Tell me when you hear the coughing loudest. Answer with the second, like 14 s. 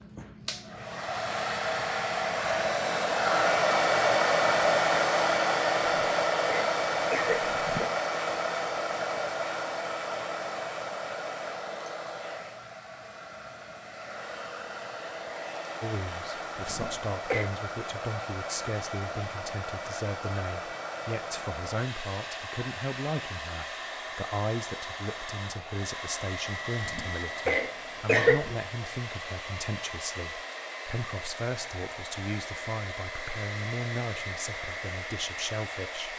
28 s.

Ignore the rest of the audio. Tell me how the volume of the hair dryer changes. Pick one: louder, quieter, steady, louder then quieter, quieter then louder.
quieter.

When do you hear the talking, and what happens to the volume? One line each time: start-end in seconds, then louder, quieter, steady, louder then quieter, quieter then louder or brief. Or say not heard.
15.8-36.1 steady.